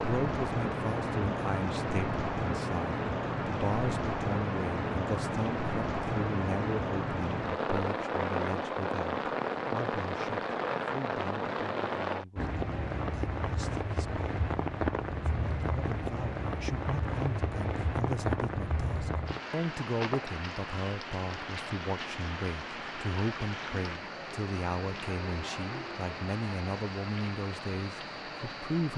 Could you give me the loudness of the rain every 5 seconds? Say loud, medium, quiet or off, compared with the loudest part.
loud, loud, loud, loud, medium, medium.